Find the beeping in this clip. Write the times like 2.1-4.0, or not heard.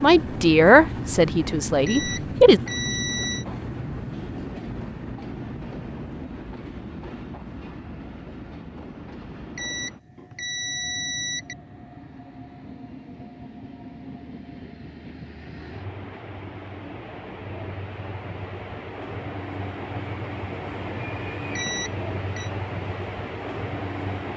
1.9-3.5, 9.6-11.6, 21.6-22.5.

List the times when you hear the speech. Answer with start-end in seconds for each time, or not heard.
0.0-2.6.